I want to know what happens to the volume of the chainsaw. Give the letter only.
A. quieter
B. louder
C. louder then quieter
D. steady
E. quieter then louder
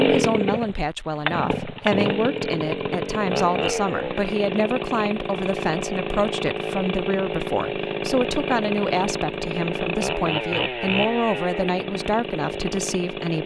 D.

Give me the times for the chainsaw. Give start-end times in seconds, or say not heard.
0.0-13.4.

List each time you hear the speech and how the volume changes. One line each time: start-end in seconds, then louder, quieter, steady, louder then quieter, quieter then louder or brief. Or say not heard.
0.0-13.4 steady.